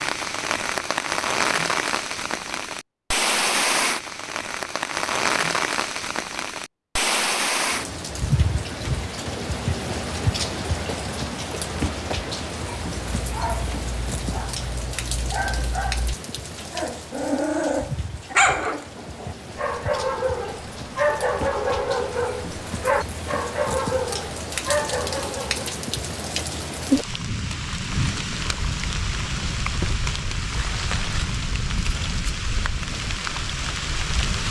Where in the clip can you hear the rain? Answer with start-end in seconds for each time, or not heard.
0.0-34.4.